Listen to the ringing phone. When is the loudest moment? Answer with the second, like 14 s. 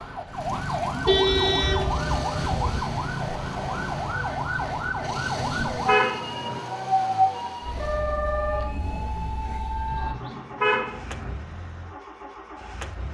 8 s.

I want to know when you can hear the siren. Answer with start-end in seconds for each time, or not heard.
0.0-10.2.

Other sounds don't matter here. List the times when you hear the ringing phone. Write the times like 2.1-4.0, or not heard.
1.6-2.4, 7.8-8.7.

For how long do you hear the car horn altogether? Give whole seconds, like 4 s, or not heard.
5 s.